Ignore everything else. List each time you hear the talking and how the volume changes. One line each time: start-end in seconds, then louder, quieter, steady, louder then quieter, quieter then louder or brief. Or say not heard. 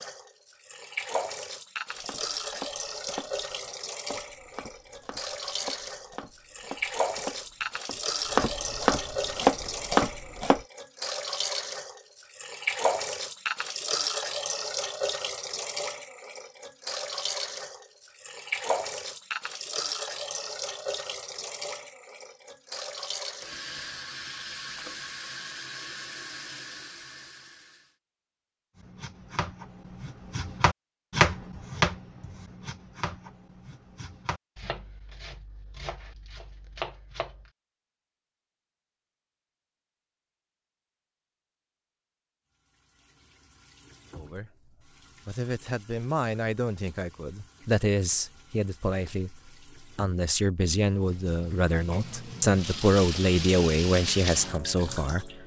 44.1-55.2 louder.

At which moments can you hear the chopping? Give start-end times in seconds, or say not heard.
1.9-10.6, 28.8-37.5.